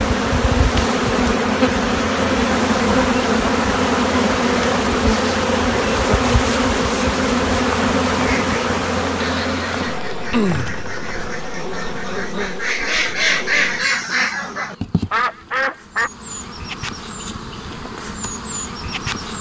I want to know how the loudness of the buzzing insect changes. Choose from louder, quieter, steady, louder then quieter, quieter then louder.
quieter.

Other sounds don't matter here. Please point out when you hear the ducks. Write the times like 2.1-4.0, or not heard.
8.2-16.1.